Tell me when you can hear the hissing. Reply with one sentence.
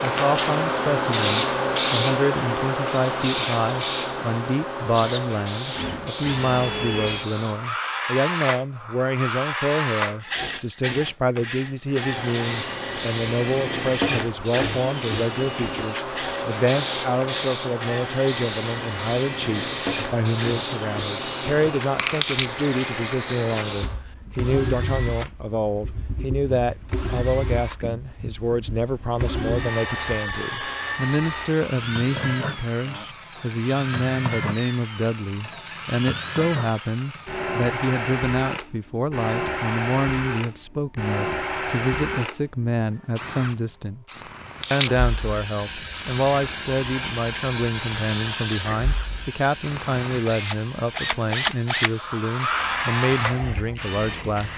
You can hear the hissing from 0.0 to 7.7 s, from 11.9 to 24.1 s and from 44.6 to 54.5 s.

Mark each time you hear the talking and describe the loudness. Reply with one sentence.
You can hear the talking from 0.0 to 54.5 s, at a steady volume.